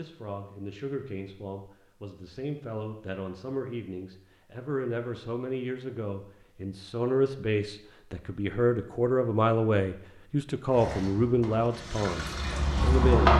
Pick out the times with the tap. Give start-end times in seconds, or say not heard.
10.7-13.3.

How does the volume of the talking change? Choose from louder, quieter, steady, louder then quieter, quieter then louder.
louder.